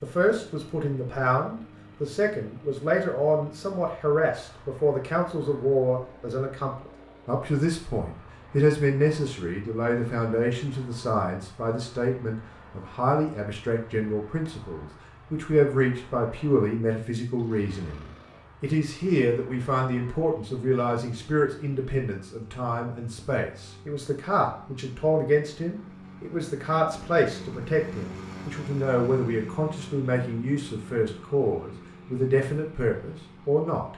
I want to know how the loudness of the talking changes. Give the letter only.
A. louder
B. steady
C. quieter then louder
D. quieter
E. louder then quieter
B.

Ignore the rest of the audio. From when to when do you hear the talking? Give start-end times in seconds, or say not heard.
0.0-33.9.